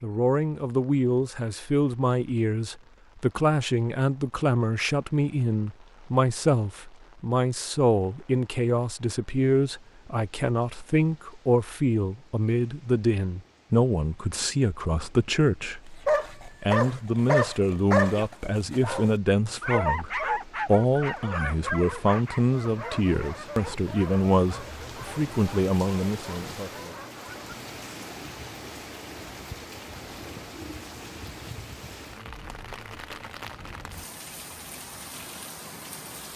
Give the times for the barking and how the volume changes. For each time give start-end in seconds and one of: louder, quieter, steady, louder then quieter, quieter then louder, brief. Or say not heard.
16.1-27.6 quieter.